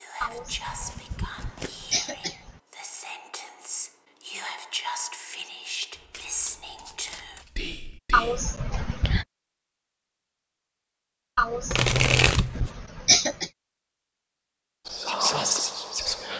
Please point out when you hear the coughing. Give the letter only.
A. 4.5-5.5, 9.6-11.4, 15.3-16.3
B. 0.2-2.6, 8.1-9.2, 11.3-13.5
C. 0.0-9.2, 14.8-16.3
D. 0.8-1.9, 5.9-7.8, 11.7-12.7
B.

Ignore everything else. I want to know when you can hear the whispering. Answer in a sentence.
The whispering can be heard from 0.0 to 9.2 s and from 14.8 to 16.3 s.